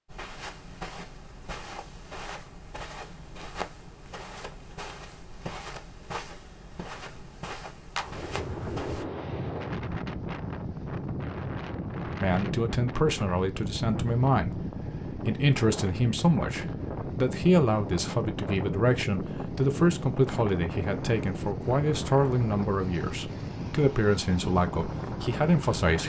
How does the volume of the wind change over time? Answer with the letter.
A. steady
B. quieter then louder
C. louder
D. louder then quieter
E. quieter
A.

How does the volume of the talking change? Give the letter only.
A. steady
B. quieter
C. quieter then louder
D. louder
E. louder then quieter
A.